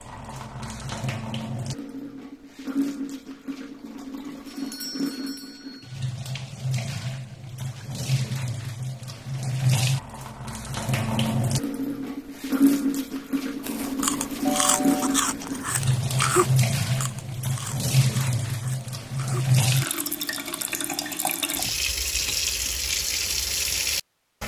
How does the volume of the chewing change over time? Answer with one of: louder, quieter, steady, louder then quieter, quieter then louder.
quieter.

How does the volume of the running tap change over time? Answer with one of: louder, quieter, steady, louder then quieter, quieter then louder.
louder.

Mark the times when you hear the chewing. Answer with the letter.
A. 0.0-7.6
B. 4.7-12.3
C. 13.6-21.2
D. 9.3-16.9
C.